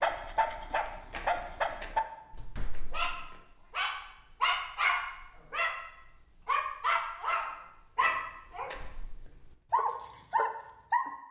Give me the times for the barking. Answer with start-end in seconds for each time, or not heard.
0.0-11.1.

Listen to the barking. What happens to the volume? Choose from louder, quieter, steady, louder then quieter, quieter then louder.
steady.